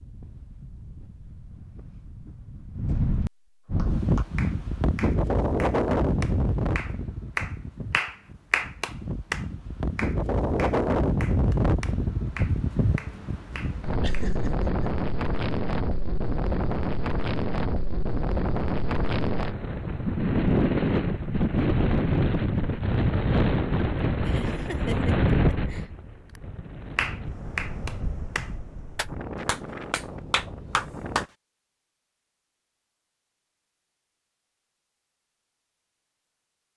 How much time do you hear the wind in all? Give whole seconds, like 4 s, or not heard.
31 s.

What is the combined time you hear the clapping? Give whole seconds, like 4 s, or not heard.
15 s.